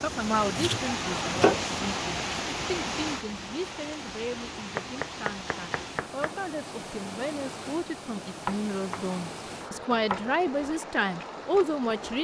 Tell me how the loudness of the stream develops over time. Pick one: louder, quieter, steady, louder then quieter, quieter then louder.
quieter.